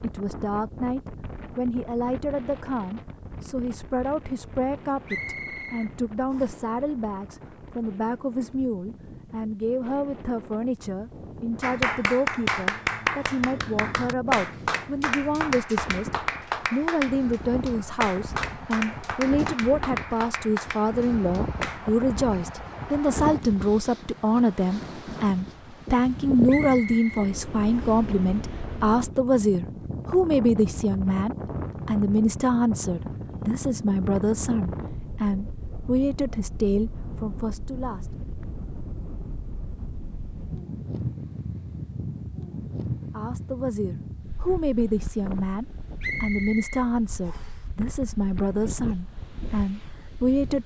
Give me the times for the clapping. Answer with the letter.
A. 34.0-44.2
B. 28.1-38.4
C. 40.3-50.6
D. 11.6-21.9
D.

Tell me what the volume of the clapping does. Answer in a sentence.
The volume of the clapping goes down.